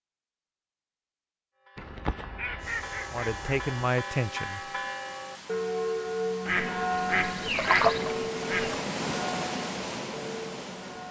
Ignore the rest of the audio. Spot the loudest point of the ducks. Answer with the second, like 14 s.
8 s.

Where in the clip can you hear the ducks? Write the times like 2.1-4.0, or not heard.
1.8-3.9, 6.5-8.8.